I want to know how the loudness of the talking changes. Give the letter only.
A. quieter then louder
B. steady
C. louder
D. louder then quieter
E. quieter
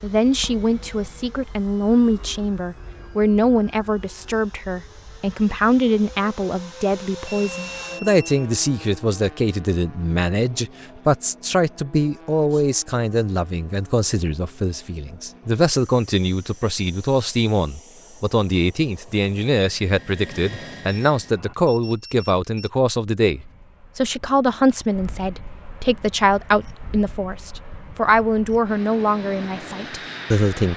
B.